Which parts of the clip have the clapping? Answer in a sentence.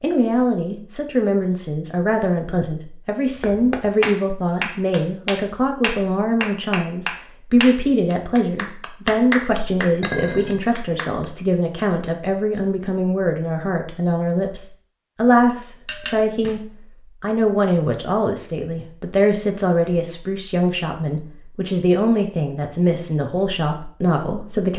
You can hear the clapping from 3.4 to 11.2 s.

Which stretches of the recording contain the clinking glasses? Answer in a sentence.
You can hear the clinking glasses from 10.0 to 10.6 s and from 15.8 to 16.6 s.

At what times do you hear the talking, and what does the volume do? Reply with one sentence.
You can hear the talking from 0.0 to 24.7 s, at a steady volume.